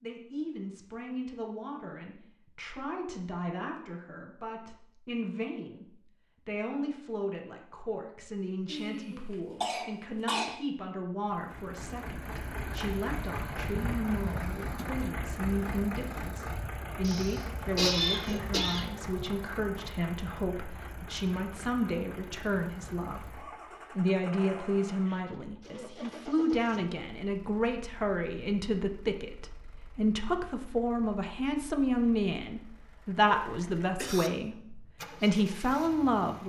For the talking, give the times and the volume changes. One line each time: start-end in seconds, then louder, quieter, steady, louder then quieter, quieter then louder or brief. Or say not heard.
0.0-36.4 louder.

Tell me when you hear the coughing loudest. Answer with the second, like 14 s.
18 s.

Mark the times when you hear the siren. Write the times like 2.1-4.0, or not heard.
not heard.